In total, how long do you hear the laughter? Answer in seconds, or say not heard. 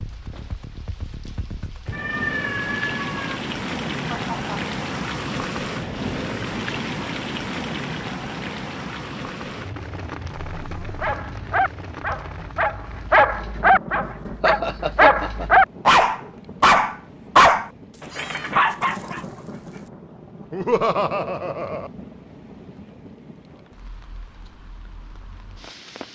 3 s.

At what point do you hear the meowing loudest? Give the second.
2 s.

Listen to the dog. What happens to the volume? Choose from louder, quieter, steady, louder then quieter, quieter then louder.
louder.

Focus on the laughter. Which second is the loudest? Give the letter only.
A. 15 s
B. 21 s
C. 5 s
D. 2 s
B.